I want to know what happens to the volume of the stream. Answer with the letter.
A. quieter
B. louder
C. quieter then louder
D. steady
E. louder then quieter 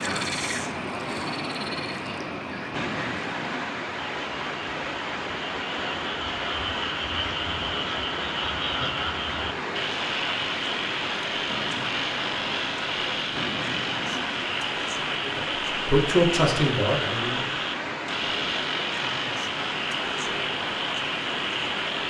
D.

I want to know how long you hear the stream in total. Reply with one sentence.
The stream can be heard for 22 seconds in total.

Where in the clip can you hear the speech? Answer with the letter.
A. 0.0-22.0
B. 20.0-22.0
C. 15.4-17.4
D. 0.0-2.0
C.